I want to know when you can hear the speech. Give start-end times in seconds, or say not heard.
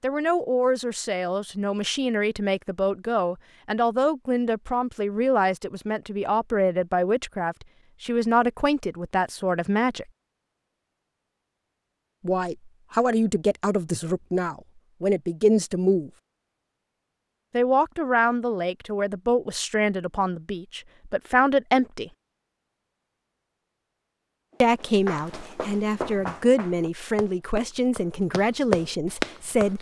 0.0-10.1, 12.2-16.1, 17.5-22.1, 24.6-29.7.